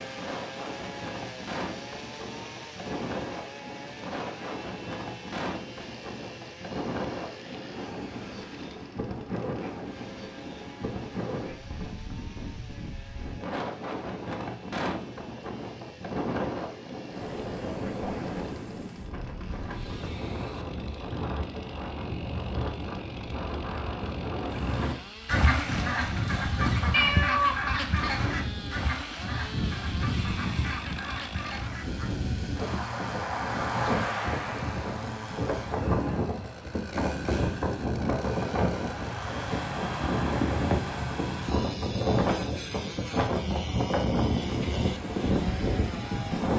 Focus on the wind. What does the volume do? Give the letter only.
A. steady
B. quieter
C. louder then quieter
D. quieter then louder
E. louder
E.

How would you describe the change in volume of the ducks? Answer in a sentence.
The volume of the ducks goes down.